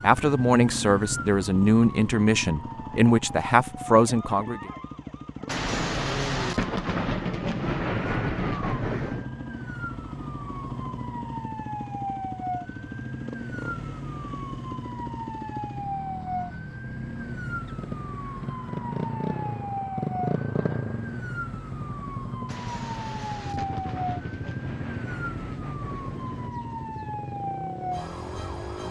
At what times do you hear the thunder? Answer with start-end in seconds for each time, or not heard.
5.5-9.3, 22.4-26.5.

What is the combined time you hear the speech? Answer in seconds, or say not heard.
5 s.